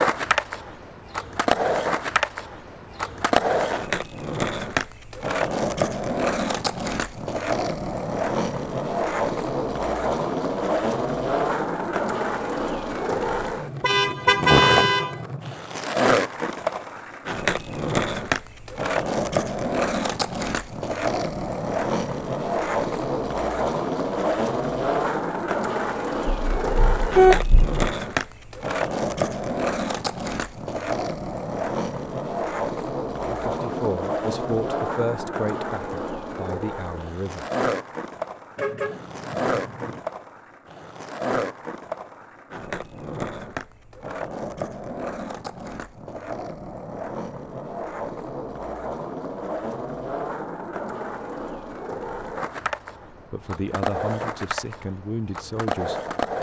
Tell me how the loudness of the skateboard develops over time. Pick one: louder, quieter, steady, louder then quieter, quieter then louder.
quieter.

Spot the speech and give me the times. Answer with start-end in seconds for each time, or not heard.
33.2-37.5, 53.3-56.3.